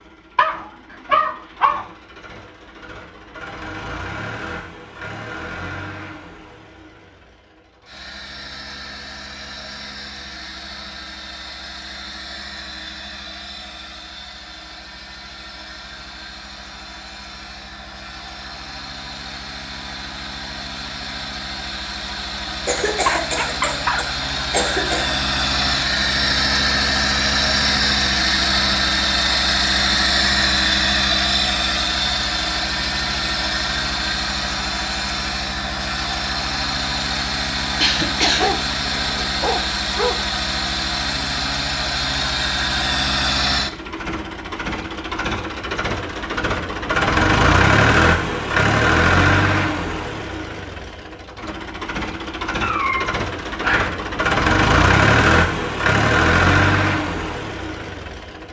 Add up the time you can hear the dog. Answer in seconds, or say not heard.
6 s.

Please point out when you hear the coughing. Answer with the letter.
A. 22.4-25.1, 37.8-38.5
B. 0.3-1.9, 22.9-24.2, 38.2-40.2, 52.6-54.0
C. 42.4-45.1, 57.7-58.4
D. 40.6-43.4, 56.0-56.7
A.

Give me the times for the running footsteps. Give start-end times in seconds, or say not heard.
not heard.